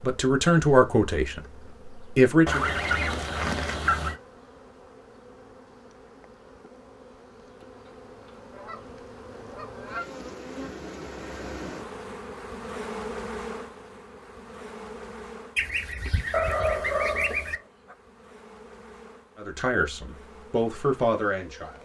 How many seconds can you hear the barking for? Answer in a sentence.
You can hear the barking for 2 seconds altogether.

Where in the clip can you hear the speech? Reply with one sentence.
The speech can be heard from 0.0 to 2.6 s and from 19.4 to 21.8 s.